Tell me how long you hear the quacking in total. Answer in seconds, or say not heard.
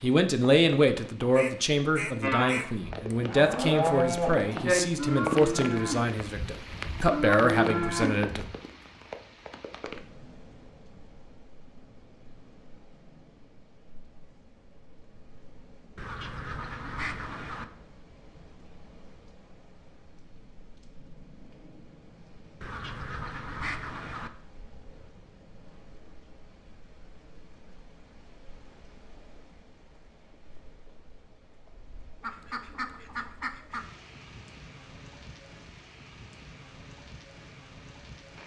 7 s.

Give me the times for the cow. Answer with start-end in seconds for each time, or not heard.
2.2-8.5.